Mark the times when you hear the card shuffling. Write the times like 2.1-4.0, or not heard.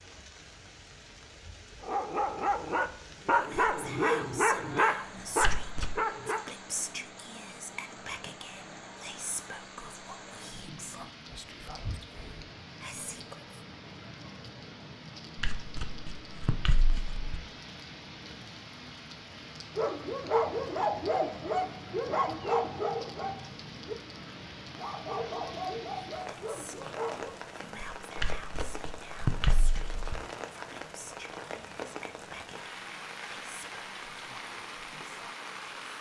5.4-6.0, 15.3-17.2, 28.1-30.1.